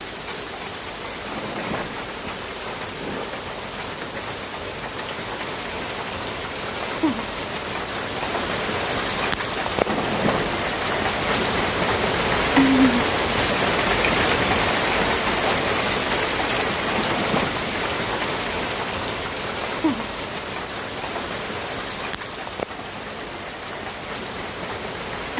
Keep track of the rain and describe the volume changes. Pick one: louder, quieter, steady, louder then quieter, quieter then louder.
louder then quieter.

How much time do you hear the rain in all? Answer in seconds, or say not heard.
25 s.